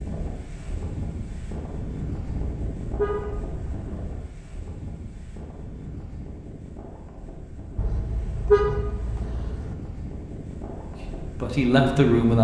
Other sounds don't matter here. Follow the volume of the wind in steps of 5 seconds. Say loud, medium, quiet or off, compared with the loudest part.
loud, medium, loud.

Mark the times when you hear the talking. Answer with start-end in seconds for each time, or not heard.
11.0-12.3.